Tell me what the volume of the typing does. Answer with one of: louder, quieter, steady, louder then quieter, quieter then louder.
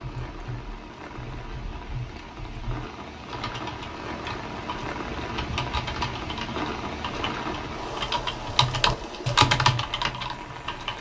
louder.